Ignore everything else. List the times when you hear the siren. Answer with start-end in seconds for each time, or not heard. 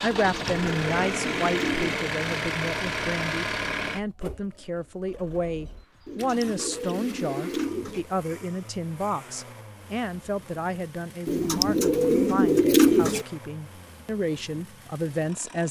not heard.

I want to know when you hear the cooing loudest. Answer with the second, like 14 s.
13 s.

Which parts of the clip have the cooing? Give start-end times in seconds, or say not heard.
0.1-2.1, 6.0-8.1, 11.2-13.2.